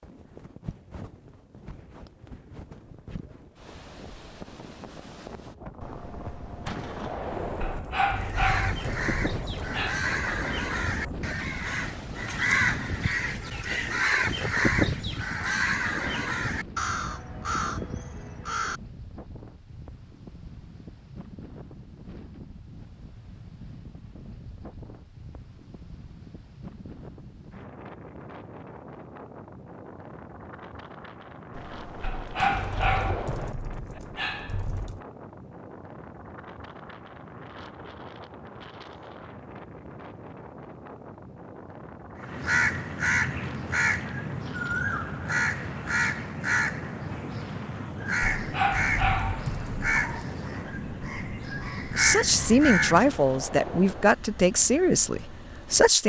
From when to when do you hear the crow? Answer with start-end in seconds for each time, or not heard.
8.2-18.8, 42.2-53.1.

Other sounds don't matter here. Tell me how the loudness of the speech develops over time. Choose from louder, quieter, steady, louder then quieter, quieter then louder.
quieter.